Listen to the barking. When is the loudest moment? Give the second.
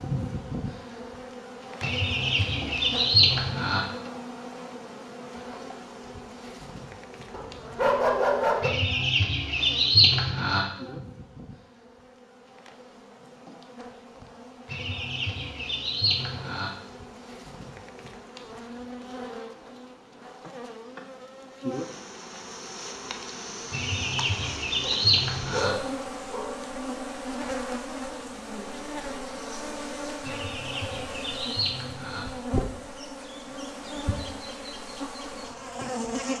8 s.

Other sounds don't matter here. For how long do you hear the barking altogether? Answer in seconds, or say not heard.
3 s.